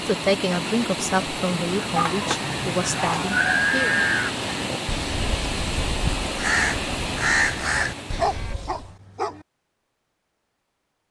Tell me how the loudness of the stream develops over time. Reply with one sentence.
The volume of the stream stays about the same.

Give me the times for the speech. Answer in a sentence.
You can hear the speech from 0.1 to 4.0 s.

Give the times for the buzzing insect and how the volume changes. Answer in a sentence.
The buzzing insect can't be heard in this clip.